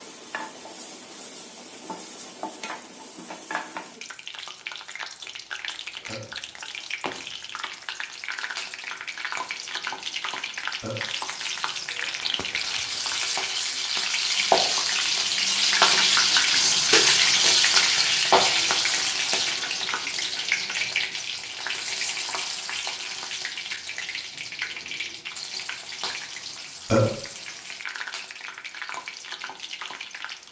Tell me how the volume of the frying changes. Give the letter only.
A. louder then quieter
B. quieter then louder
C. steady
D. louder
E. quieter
A.